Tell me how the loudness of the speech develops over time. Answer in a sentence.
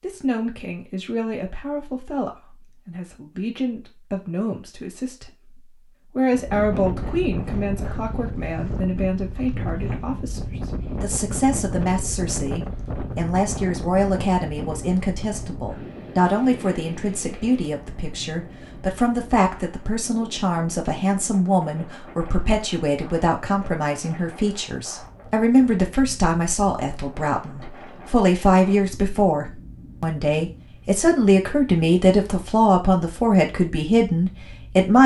The loudness of the speech goes up.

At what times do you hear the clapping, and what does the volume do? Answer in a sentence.
The clapping can't be heard in this clip.